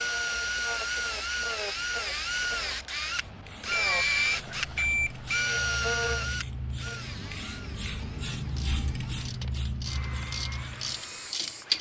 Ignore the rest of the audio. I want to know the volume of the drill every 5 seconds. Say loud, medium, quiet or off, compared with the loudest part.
loud, loud, quiet.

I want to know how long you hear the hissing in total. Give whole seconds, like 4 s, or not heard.
12 s.